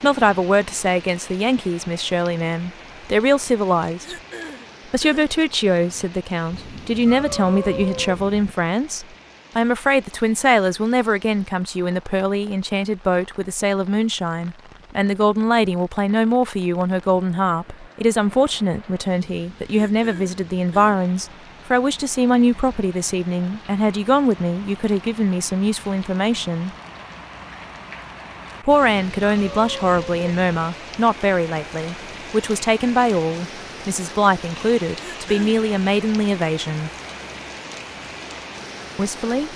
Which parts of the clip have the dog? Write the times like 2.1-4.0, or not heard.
not heard.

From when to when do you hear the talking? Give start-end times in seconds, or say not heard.
0.0-4.2, 4.9-26.7, 28.6-36.9, 39.0-39.5.